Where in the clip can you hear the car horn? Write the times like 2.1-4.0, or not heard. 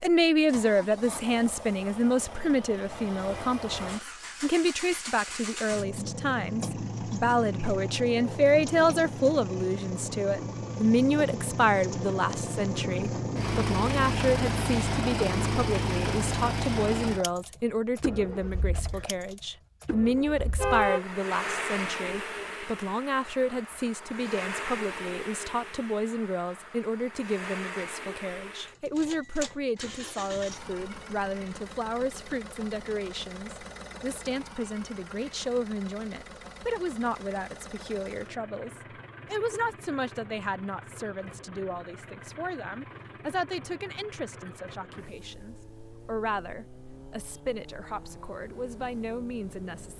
20.4-21.1.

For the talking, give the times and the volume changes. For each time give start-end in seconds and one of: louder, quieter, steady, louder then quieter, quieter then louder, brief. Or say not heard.
0.0-49.9 quieter.